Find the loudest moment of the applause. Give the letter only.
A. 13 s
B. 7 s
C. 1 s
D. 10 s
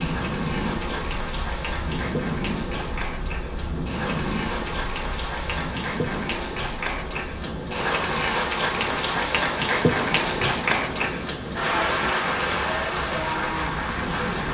D.